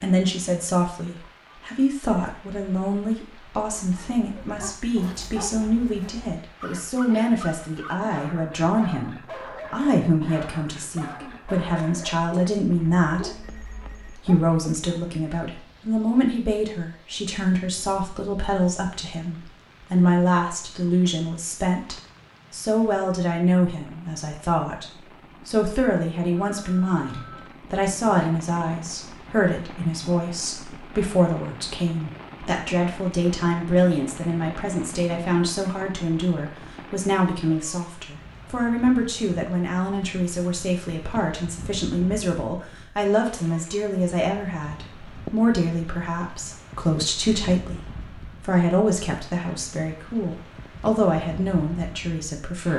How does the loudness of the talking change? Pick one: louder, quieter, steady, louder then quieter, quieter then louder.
steady.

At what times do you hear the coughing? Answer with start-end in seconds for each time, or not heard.
not heard.